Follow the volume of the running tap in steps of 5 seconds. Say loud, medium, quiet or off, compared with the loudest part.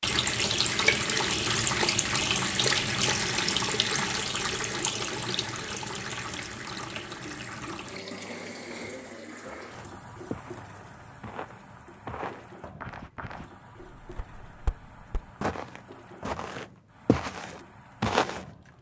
loud, medium, quiet, quiet.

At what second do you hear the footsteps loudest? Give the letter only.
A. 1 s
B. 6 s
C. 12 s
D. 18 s
D.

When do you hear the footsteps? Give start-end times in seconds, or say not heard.
9.4-18.4.